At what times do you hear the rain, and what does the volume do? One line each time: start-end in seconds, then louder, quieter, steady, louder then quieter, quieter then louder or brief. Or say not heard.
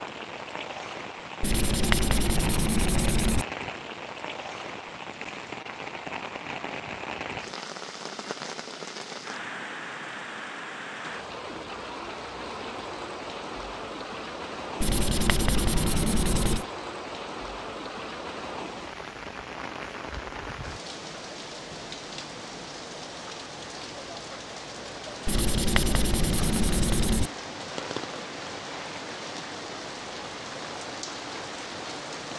0.0-32.3 steady.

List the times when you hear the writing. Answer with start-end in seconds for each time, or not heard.
1.4-3.5, 14.8-16.6, 25.2-27.3.